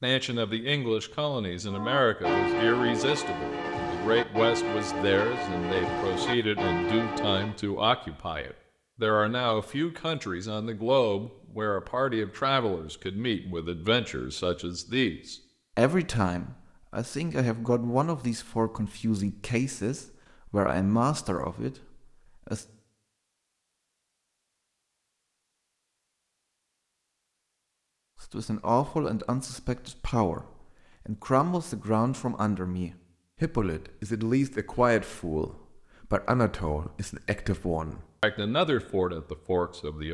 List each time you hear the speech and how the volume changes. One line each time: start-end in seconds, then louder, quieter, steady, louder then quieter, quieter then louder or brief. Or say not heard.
0.0-22.6 steady
28.1-40.0 steady.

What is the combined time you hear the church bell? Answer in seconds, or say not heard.
6 s.